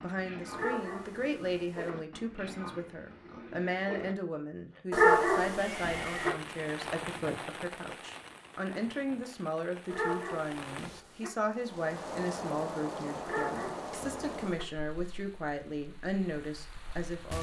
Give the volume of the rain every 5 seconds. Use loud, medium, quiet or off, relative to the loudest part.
off, loud, loud, medium.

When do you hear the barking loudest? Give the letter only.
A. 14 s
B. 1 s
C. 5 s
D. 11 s
C.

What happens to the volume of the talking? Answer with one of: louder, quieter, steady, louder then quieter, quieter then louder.
steady.